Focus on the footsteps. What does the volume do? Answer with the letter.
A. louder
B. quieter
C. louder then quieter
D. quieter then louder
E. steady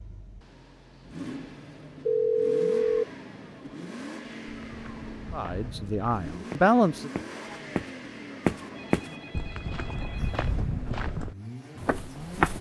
C.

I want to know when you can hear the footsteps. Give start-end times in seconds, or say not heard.
4.5-12.5.